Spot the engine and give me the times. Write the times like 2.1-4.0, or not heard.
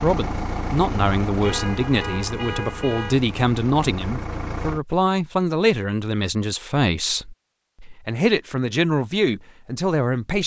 0.0-4.8.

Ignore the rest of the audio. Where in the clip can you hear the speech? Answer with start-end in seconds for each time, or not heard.
0.0-10.4.